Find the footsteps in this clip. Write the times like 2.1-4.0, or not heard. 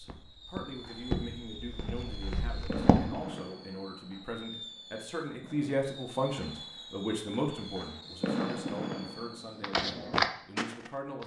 0.0-3.2, 9.6-11.2.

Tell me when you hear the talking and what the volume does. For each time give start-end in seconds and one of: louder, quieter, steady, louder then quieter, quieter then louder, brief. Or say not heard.
0.0-11.2 louder then quieter.